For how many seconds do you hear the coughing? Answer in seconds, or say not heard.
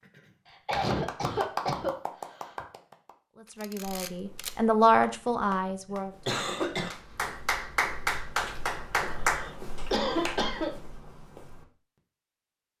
5 s.